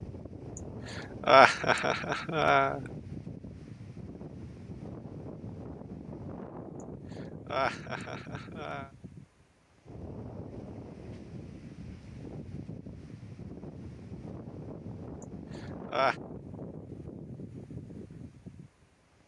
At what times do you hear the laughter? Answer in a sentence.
The laughter can be heard from 1.2 to 2.8 s, from 7.5 to 8.9 s and from 15.6 to 16.1 s.